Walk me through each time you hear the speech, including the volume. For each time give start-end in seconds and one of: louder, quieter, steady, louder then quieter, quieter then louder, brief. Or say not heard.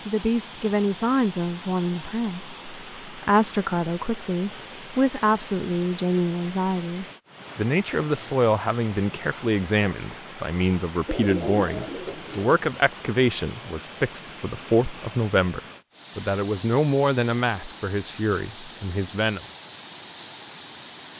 0.0-19.4 steady.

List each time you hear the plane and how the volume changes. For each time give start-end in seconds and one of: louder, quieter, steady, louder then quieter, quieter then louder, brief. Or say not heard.
not heard.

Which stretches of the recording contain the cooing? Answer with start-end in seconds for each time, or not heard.
11.1-12.6.